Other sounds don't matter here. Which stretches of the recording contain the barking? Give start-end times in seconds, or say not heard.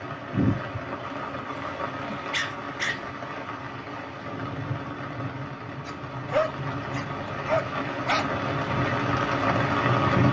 1.4-3.1, 5.8-8.2.